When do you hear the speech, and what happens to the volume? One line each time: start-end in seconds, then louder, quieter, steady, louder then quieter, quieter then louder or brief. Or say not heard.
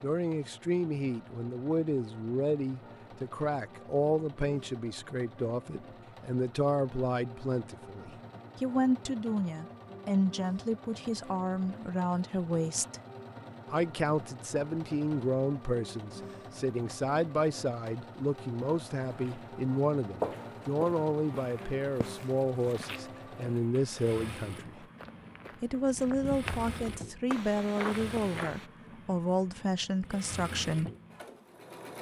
0.0-13.0 steady
13.7-24.9 steady
25.6-30.9 steady.